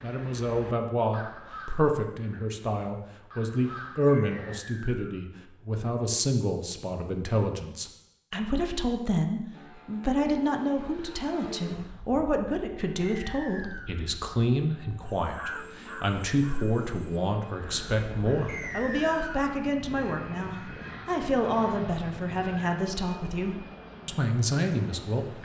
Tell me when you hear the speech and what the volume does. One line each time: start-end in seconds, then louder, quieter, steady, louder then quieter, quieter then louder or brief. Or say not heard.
0.0-25.4 steady.